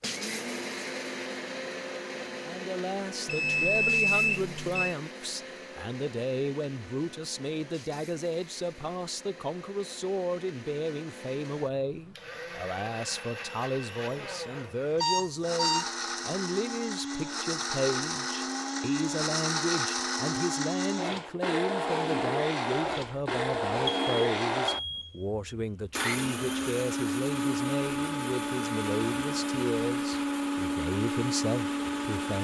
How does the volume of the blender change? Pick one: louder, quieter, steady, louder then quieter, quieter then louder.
quieter then louder.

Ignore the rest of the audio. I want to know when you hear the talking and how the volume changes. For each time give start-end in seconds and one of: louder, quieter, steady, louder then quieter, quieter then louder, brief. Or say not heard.
2.4-32.3 steady.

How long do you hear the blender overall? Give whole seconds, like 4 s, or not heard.
32 s.